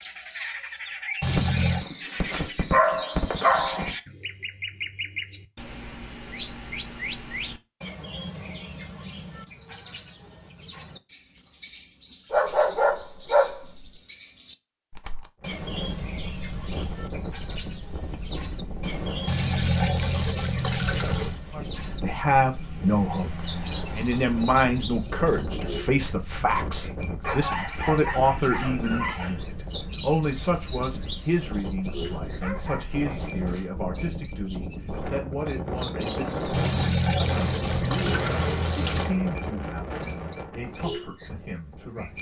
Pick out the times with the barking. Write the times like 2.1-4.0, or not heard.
1.2-4.0, 12.3-13.8, 27.2-29.4, 31.9-33.6.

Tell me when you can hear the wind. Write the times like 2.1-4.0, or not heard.
15.4-42.1.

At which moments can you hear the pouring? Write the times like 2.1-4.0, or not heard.
1.2-1.9, 19.2-21.4, 36.5-39.1.